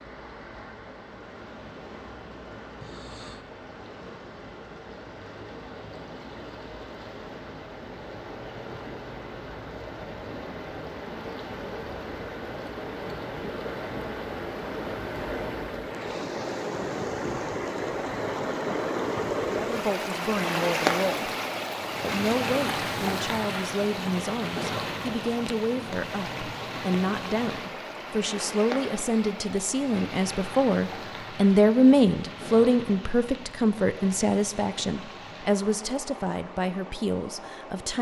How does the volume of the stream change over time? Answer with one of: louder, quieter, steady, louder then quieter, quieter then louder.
louder then quieter.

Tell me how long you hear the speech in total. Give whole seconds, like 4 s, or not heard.
18 s.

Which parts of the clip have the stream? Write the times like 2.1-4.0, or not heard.
0.0-37.9.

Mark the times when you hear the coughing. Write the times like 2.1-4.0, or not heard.
2.8-3.5.